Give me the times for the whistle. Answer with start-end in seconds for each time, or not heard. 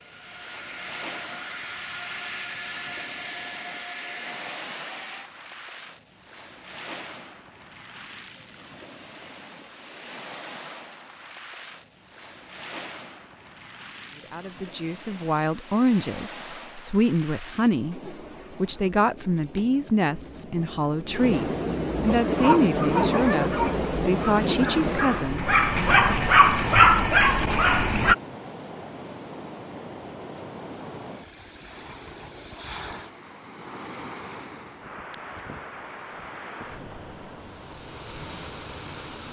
not heard.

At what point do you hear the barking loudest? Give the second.
27 s.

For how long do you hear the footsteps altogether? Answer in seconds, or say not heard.
not heard.